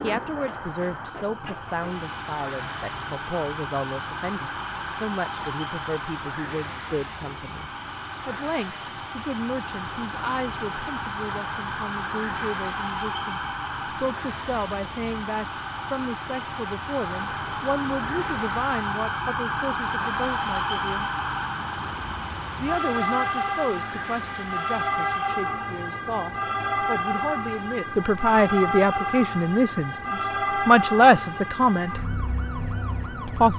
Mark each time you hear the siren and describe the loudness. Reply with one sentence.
The siren can be heard from 0.0 to 33.5 s, getting louder.